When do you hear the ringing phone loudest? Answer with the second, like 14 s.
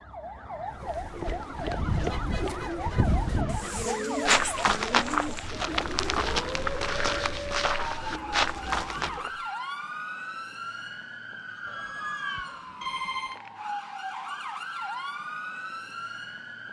13 s.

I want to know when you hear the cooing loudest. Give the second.
4 s.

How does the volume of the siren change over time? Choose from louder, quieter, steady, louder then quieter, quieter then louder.
steady.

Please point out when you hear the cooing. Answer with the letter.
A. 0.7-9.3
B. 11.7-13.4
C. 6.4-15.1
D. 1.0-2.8
A.